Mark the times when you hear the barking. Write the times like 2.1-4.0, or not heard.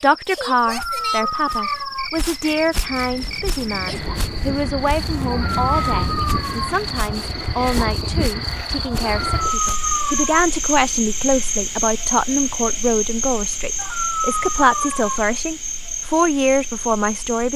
0.7-2.1, 5.3-6.7, 9.2-10.4, 13.8-15.2.